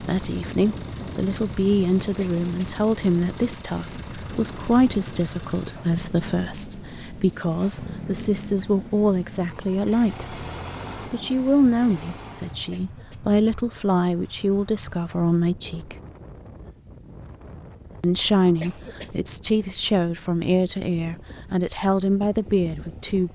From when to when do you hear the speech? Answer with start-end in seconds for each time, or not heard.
0.0-10.3, 11.1-15.9, 18.0-23.3.